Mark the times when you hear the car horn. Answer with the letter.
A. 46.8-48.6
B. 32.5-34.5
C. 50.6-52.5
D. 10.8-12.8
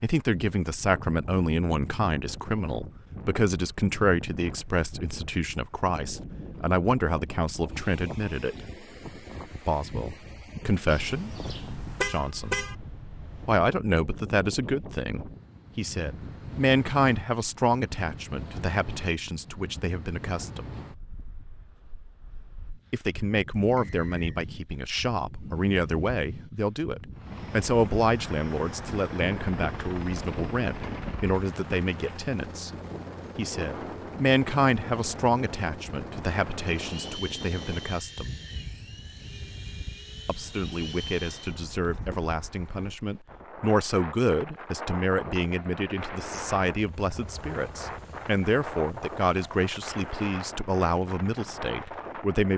D.